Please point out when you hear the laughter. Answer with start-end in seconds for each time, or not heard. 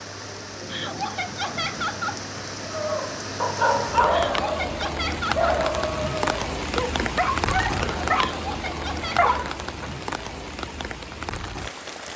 0.7-2.2, 4.1-5.5, 8.1-9.5.